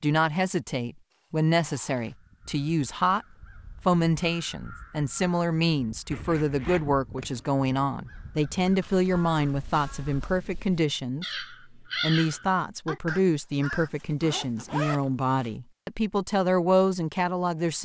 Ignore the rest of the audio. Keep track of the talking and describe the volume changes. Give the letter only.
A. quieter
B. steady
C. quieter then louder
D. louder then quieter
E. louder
B.